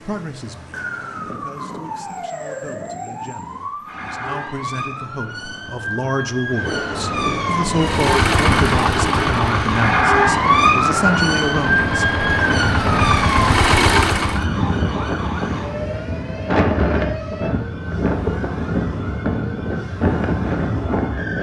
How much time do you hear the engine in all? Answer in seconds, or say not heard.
7 s.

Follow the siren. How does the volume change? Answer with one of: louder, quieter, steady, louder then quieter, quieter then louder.
louder then quieter.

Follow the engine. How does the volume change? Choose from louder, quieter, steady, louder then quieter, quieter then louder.
quieter then louder.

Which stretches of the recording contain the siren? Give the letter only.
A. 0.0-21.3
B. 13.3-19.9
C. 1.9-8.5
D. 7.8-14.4
A.